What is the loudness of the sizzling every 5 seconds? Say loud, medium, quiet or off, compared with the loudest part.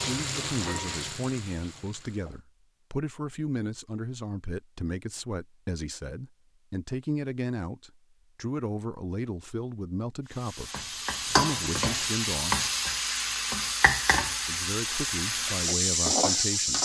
medium, off, loud, loud.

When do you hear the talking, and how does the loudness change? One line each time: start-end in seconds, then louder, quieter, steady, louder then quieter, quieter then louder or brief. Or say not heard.
0.1-12.6 steady
14.4-16.8 brief.